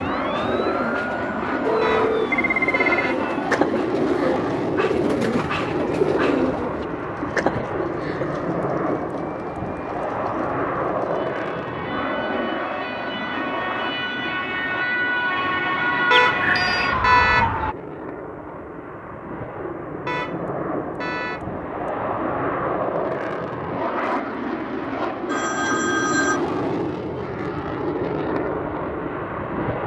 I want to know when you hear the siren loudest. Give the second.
17 s.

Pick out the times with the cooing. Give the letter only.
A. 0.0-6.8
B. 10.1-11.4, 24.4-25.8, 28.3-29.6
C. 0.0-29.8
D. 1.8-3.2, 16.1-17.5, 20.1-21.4
A.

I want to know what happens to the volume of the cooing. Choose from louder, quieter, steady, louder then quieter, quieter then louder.
louder.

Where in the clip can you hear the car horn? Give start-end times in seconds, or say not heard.
1.8-3.2, 16.1-17.5, 20.1-21.4.